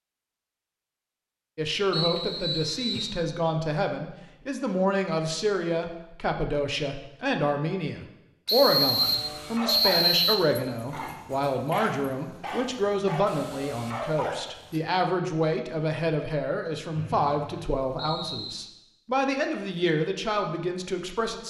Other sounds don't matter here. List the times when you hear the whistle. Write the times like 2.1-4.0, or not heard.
1.9-3.2, 8.4-10.3, 16.9-18.6.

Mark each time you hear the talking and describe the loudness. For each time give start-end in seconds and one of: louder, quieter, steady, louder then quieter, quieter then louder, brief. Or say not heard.
1.6-21.4 steady.